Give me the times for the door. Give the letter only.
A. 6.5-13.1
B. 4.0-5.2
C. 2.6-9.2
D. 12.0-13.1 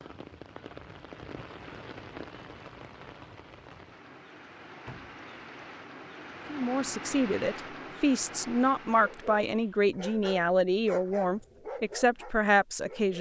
B.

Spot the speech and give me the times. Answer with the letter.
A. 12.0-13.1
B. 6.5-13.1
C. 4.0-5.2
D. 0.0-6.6
B.